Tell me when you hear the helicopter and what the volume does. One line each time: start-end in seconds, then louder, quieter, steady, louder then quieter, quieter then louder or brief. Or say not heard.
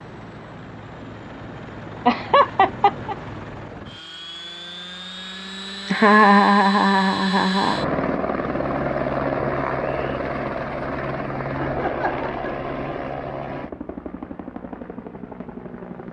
0.0-16.0 louder then quieter.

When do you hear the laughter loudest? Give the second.
6 s.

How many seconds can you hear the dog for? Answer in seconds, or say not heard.
not heard.